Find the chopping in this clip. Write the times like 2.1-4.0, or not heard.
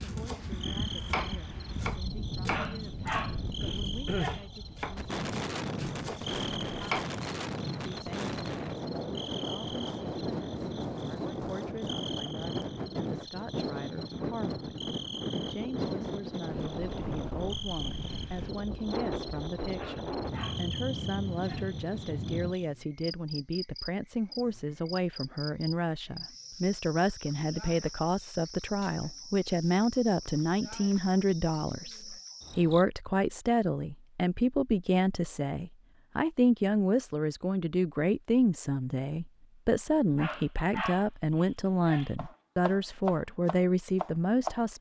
0.0-7.0, 42.1-44.6.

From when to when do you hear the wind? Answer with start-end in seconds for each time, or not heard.
0.0-22.6.